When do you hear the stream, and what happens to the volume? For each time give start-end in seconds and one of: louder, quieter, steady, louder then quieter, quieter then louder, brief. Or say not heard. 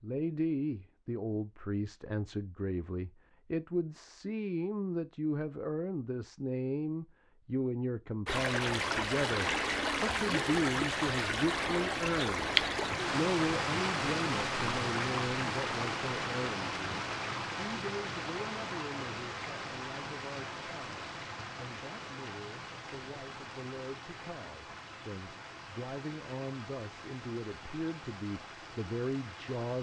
8.2-29.7 quieter.